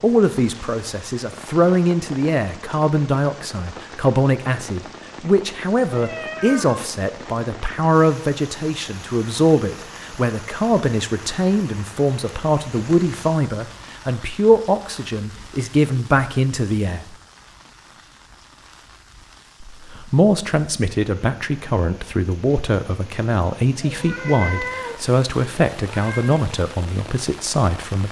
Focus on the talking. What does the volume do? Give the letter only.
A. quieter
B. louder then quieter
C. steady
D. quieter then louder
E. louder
C.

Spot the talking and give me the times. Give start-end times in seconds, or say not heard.
0.0-17.1, 19.6-28.0.